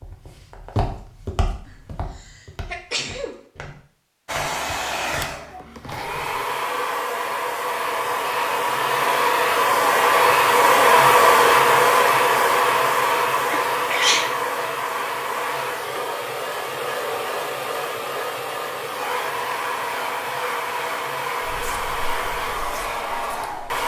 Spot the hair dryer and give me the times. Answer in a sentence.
You can hear the hair dryer from 4.2 to 23.8 s.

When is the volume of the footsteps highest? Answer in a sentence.
The loudest moment of the footsteps is at 1 second.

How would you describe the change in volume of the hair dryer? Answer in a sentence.
The volume of the hair dryer goes up, then down.